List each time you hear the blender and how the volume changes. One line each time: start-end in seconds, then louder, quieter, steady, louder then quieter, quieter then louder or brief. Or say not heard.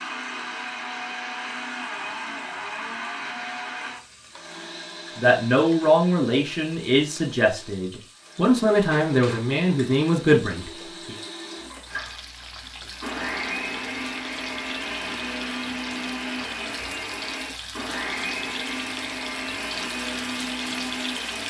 0.0-21.4 quieter then louder.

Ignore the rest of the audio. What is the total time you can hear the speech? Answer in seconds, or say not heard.
6 s.